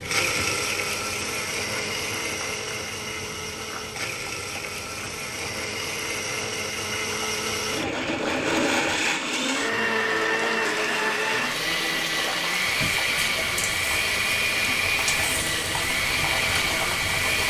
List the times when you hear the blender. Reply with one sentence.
You can hear the blender from 0.0 to 17.4 s.